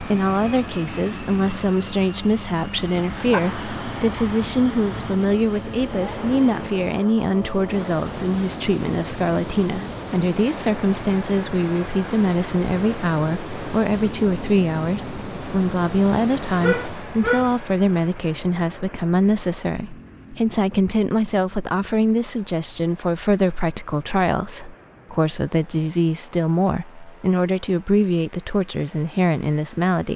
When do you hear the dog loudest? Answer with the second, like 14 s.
17 s.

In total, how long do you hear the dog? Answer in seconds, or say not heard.
3 s.